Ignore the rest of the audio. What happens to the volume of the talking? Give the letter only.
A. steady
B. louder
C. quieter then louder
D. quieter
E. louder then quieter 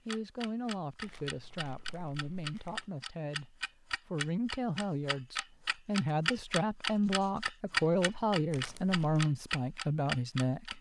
B.